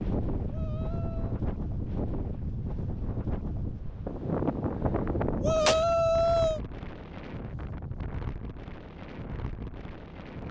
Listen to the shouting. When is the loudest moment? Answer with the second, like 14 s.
6 s.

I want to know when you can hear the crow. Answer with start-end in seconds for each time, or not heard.
not heard.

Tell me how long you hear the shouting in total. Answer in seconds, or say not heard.
2 s.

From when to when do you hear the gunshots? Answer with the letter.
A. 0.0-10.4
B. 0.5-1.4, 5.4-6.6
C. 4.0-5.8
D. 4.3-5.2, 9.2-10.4
C.